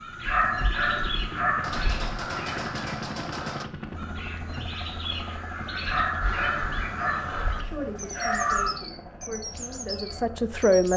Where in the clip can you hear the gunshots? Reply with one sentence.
You can hear the gunshots from 1.6 to 3.6 s.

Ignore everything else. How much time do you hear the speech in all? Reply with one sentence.
The speech can be heard for 3 seconds in total.